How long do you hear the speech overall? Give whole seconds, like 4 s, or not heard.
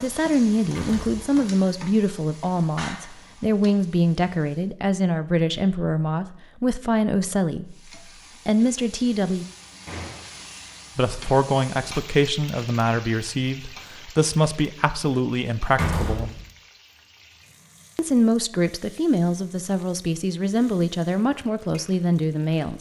19 s.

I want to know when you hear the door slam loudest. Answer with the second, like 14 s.
16 s.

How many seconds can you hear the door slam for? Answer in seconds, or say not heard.
2 s.